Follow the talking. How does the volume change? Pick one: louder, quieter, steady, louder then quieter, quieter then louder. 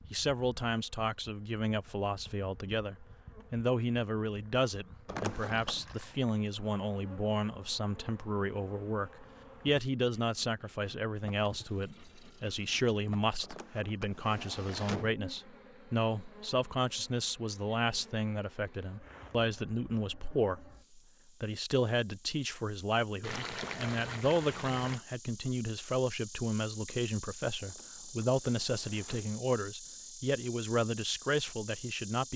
steady.